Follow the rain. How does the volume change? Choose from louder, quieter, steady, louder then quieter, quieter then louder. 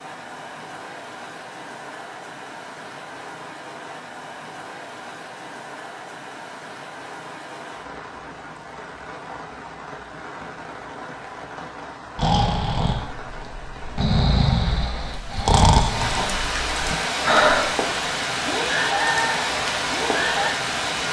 louder.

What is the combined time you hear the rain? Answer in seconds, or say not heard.
21 s.